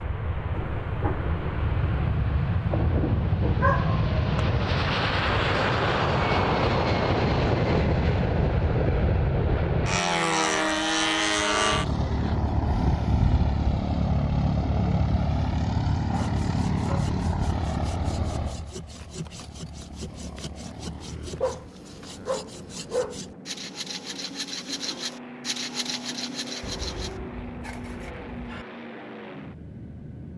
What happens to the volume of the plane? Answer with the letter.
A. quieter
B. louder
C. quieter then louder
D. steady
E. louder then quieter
A.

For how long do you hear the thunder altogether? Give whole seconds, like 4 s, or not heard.
5 s.